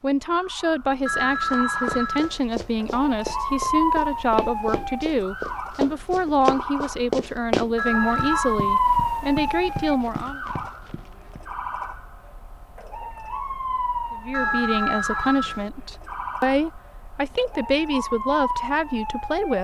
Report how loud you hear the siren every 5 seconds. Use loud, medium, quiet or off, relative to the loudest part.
loud, loud, medium, medium.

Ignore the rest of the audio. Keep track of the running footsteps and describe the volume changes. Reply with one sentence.
The volume of the running footsteps goes up, then down.